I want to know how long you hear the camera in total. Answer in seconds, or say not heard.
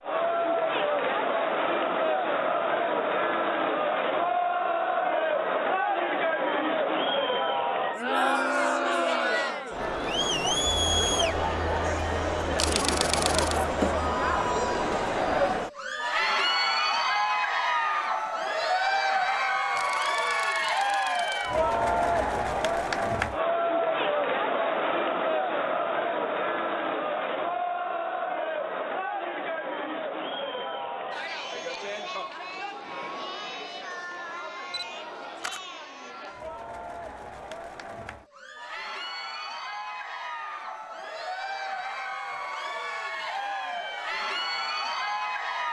4 s.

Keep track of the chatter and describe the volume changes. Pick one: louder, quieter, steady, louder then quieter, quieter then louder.
quieter.